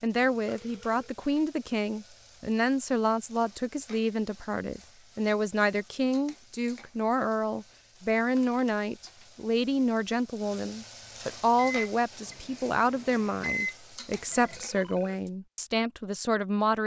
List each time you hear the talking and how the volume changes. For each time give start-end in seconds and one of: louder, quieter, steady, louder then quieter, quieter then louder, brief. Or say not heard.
0.0-16.8 steady.